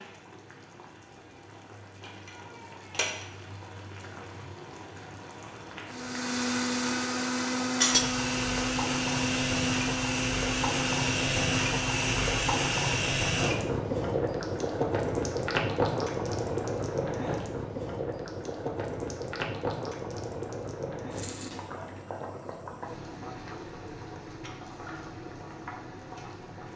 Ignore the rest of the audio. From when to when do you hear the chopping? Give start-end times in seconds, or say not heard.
not heard.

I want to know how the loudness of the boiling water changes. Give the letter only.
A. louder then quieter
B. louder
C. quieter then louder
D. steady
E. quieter
A.